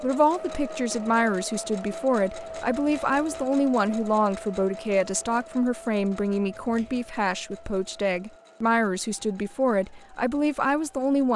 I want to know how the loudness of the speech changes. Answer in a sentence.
The volume of the speech stays about the same.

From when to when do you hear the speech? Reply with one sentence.
The speech can be heard from 0.0 to 11.3 s.